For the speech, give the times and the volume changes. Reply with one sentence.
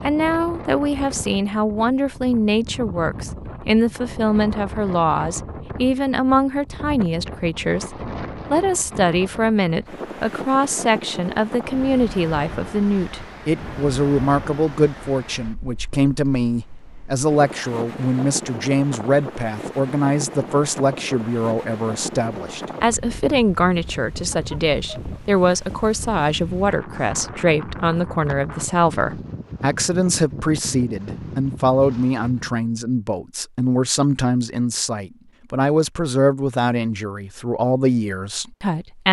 The speech can be heard from 0.1 to 39.0 s, at a steady volume.